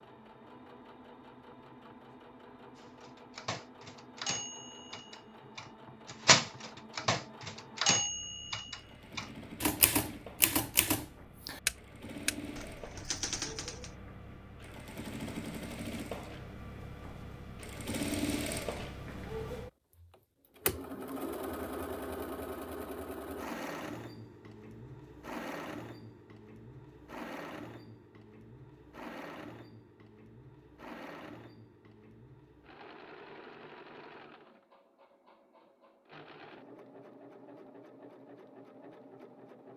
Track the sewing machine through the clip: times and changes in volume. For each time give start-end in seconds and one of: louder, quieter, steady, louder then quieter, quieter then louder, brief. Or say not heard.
0.0-39.7 louder then quieter.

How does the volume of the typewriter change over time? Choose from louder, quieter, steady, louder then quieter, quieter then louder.
louder then quieter.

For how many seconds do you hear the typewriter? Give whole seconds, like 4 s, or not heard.
11 s.